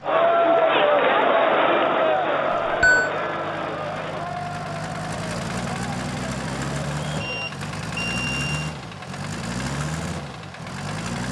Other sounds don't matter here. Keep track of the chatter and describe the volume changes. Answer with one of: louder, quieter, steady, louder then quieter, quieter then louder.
quieter.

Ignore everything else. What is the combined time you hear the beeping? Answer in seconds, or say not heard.
2 s.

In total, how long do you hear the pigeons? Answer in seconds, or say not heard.
not heard.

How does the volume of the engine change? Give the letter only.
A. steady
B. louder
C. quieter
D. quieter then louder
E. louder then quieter
B.